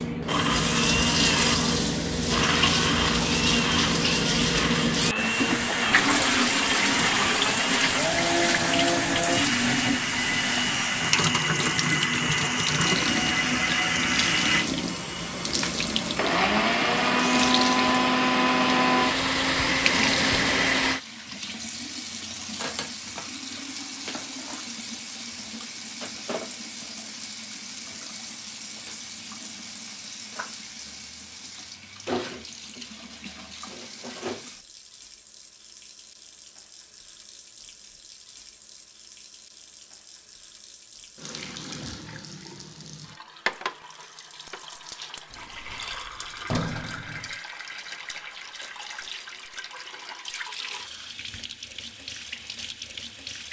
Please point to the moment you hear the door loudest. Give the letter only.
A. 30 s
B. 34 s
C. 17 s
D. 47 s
D.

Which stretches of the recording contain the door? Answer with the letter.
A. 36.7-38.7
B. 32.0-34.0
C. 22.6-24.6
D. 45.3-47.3
D.